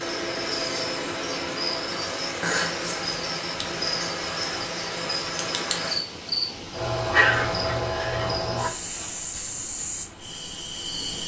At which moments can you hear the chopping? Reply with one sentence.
You can't hear the chopping here.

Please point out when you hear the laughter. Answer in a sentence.
The laughter can't be heard in this clip.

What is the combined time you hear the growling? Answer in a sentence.
You can hear the growling for 2 seconds altogether.